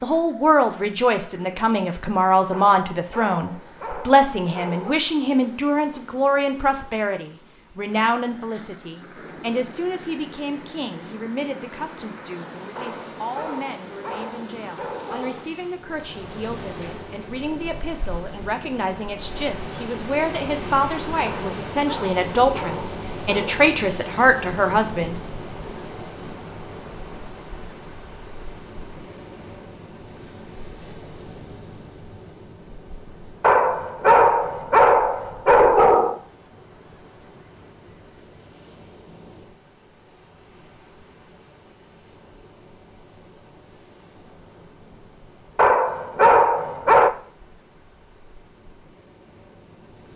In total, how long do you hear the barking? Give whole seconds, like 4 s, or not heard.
12 s.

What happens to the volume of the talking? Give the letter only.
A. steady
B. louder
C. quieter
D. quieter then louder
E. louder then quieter
D.